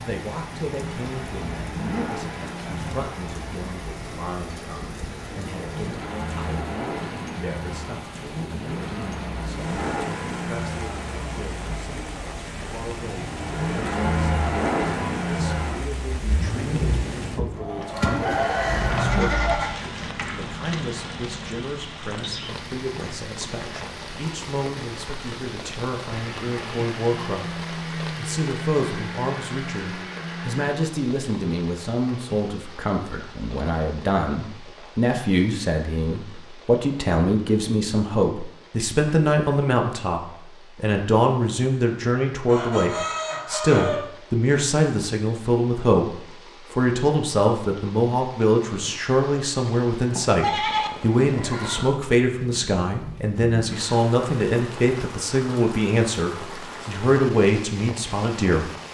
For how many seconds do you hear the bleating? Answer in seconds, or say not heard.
4 s.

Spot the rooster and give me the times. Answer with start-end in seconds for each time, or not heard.
17.8-19.8, 42.5-44.1.